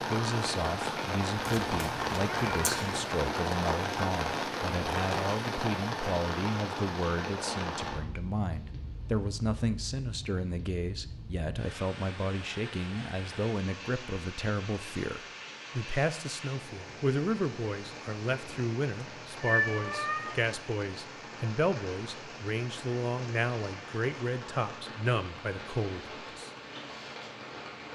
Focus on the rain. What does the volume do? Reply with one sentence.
The volume of the rain goes down.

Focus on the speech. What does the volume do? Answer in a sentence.
The loudness of the speech stays about the same.